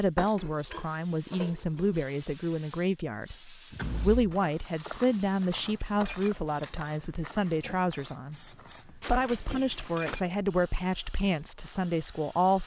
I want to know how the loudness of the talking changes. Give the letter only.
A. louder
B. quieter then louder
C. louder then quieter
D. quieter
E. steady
E.